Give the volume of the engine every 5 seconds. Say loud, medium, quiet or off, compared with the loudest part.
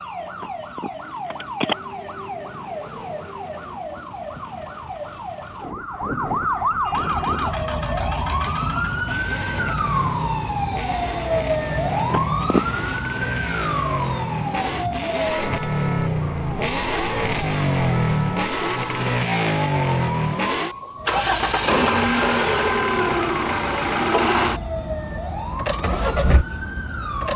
off, medium, medium, loud, loud, medium.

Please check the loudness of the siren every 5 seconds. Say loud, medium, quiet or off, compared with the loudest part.
medium, loud, loud, medium, medium, medium.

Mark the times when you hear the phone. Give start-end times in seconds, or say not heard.
0.4-1.8, 11.9-12.8, 21.6-23.2.